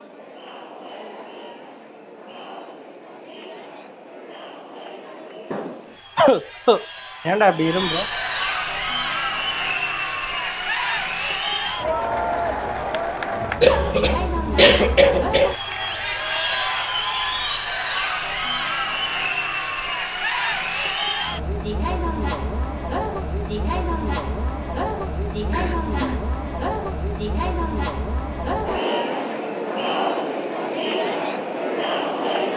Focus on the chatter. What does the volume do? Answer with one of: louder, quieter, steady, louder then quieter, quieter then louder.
louder.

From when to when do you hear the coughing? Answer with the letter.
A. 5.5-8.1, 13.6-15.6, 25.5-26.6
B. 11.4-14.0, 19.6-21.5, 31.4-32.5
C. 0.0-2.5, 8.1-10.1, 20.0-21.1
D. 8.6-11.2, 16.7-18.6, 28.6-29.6
A.